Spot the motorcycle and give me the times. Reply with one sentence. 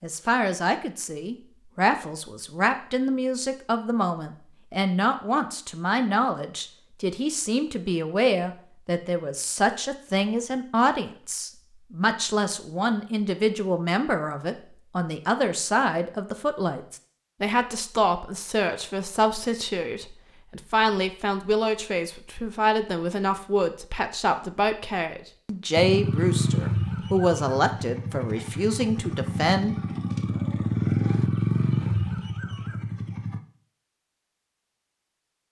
The motorcycle can be heard from 25.8 to 33.4 s.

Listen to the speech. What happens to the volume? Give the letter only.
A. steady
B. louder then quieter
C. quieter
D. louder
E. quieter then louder
A.